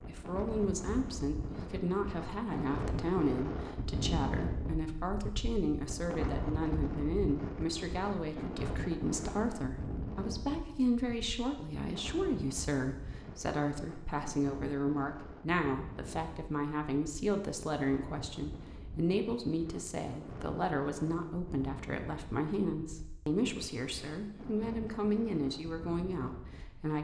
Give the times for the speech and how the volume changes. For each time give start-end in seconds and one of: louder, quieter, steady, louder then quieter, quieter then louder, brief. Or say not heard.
0.1-26.9 steady.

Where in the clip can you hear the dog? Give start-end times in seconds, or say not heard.
not heard.